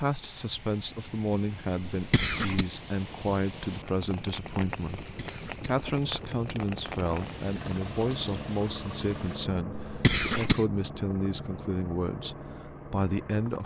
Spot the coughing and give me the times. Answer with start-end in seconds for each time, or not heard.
1.9-2.6, 5.0-5.8, 9.7-10.7.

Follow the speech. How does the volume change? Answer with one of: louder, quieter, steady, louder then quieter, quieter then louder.
steady.